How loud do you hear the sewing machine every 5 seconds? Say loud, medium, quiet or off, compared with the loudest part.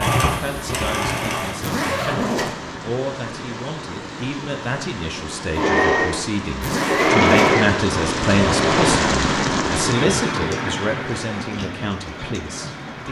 medium, loud, off.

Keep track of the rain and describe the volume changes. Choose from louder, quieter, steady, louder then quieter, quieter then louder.
louder then quieter.